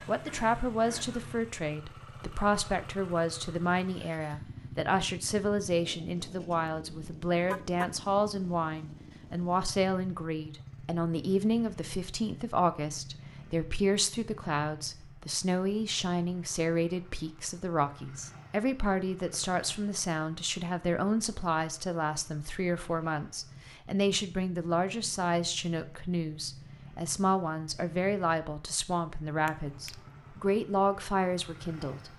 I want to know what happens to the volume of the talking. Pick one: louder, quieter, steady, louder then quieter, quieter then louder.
steady.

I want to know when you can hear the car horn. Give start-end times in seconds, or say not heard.
7.5-7.9, 29.4-30.1.